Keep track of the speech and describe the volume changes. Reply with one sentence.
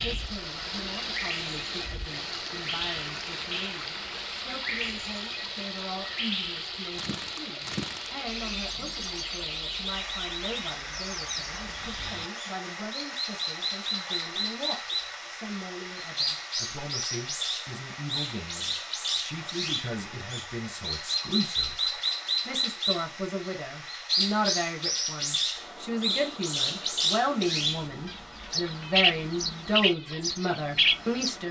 The loudness of the speech goes up.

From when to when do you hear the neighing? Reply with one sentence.
The neighing can't be heard in this clip.